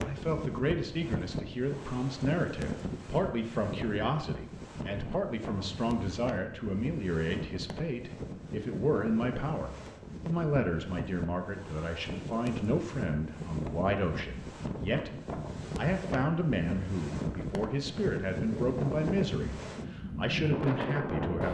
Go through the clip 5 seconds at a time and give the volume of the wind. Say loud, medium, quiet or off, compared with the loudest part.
medium, medium, medium, loud, loud.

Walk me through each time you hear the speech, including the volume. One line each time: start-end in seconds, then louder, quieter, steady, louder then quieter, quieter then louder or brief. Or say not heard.
0.0-21.4 steady.